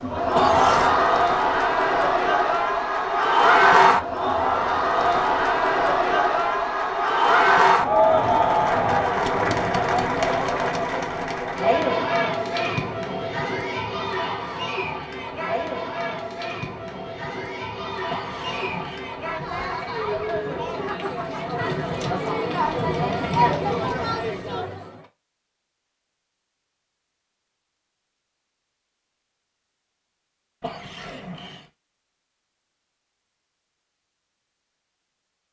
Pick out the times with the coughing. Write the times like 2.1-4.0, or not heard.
0.3-0.9, 18.1-19.0, 30.6-31.7.